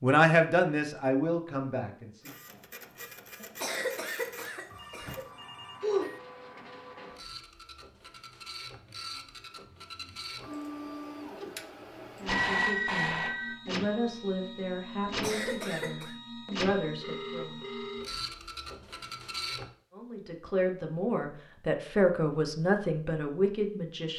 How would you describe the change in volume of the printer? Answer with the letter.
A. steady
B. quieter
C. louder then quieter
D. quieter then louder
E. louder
E.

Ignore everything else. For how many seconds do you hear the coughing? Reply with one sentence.
The coughing can be heard for 3 seconds in total.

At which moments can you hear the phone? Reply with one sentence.
The phone can be heard from 4.7 to 6.2 s, from 12.2 to 13.6 s and from 17.0 to 18.1 s.